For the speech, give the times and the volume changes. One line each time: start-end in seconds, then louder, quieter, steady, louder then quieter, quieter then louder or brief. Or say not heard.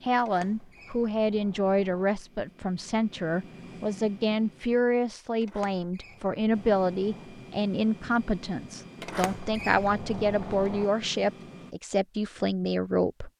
0.0-13.3 steady.